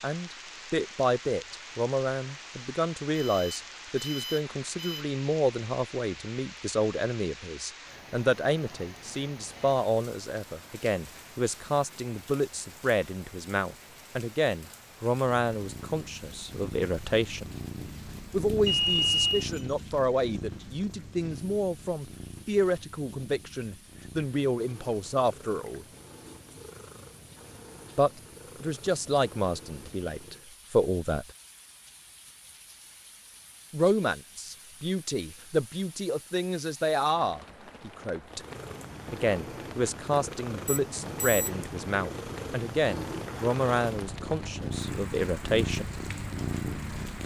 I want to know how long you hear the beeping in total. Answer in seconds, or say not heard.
4 s.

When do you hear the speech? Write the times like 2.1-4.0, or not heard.
0.0-17.5, 18.3-25.9, 27.9-31.3, 33.7-38.4, 39.1-45.9.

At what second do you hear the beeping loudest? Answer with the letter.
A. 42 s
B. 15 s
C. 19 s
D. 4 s
C.